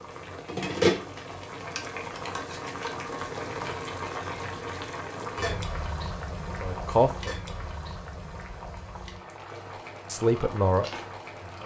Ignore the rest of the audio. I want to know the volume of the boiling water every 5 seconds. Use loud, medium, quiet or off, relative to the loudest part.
loud, medium, medium.